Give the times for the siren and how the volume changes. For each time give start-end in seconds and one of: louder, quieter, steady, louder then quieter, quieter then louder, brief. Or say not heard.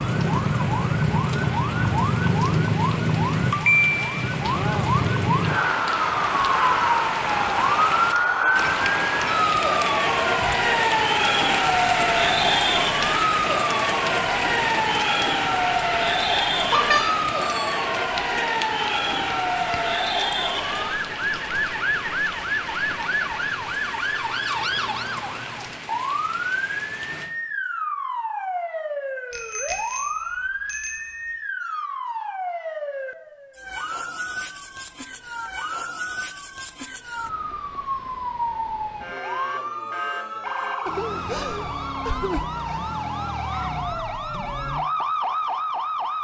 0.0-46.1 quieter.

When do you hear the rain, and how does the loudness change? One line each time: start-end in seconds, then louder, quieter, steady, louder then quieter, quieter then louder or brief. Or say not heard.
0.0-27.3 louder then quieter.